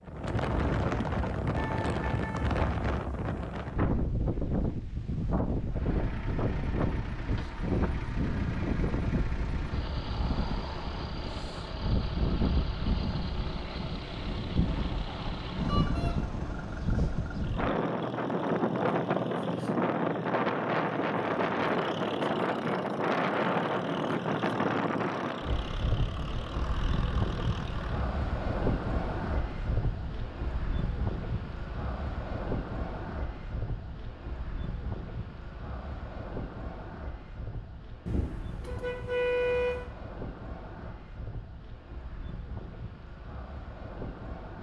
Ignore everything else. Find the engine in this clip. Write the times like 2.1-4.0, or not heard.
5.7-28.1.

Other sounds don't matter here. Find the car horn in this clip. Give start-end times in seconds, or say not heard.
1.6-2.5, 15.7-16.1, 38.0-39.9.